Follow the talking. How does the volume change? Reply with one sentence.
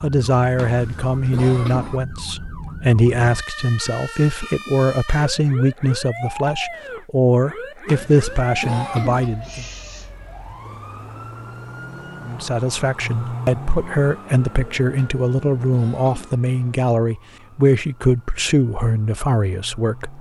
The volume of the talking stays about the same.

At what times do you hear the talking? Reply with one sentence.
You can hear the talking from 0.0 to 9.7 s and from 12.2 to 20.1 s.